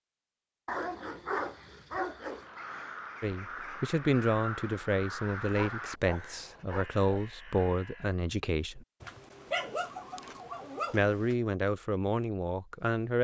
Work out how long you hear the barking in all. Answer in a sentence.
The barking can be heard for 6 seconds in total.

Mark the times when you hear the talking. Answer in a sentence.
You can hear the talking from 3.2 to 8.8 s and from 10.9 to 13.1 s.